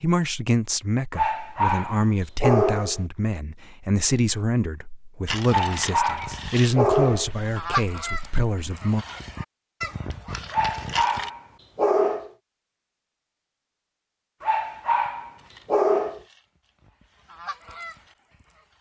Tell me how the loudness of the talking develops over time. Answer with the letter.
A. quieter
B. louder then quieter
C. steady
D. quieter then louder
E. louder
C.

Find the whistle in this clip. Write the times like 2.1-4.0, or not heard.
not heard.